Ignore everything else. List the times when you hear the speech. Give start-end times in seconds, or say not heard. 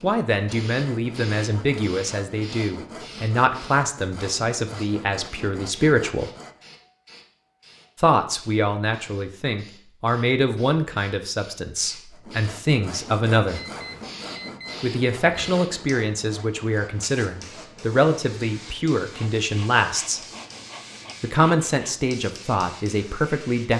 0.0-6.3, 8.0-13.6, 14.8-20.2, 21.2-23.7.